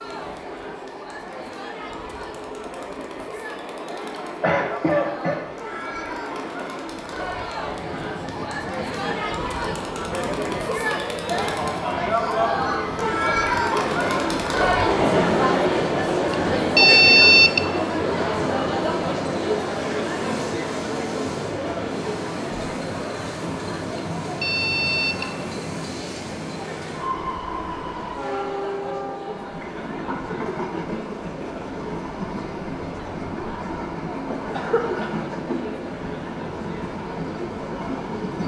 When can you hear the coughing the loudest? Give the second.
5 s.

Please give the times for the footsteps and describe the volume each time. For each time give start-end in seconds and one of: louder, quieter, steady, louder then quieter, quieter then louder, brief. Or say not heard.
not heard.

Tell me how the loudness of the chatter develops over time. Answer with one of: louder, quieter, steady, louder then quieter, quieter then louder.
louder then quieter.